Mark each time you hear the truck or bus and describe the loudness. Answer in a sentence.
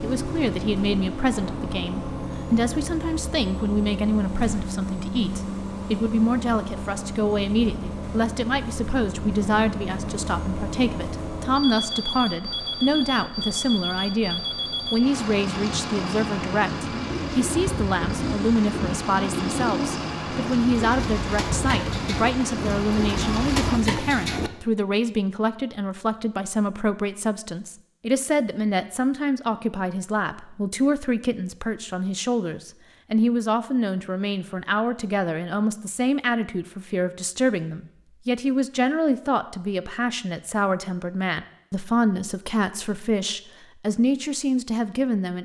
The truck or bus can be heard from 0.0 to 23.8 s, at a steady volume.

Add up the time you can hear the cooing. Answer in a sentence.
You can hear the cooing for 8 seconds altogether.